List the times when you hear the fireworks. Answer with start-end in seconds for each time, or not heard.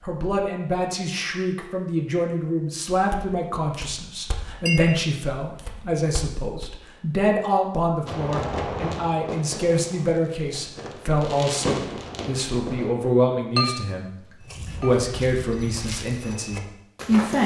8.1-13.1.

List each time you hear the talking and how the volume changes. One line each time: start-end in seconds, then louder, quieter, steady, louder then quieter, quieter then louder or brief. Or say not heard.
0.0-17.4 steady.